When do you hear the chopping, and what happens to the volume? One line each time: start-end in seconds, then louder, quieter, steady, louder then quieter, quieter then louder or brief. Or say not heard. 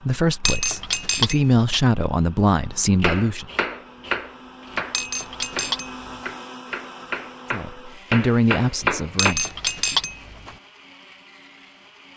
3.0-9.3 quieter then louder.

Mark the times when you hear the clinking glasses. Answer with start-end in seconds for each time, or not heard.
0.5-1.8, 4.9-6.3, 9.2-10.6.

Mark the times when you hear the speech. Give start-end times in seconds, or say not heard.
0.0-3.5, 7.5-9.4.